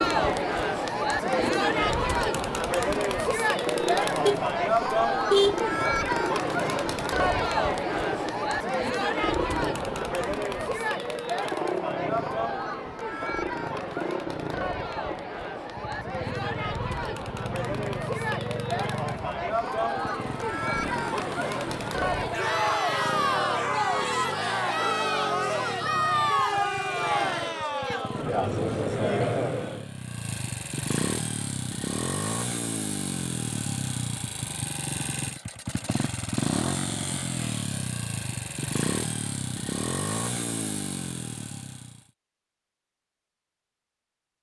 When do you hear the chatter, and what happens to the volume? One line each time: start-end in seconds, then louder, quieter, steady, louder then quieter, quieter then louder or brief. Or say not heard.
0.0-29.9 quieter then louder.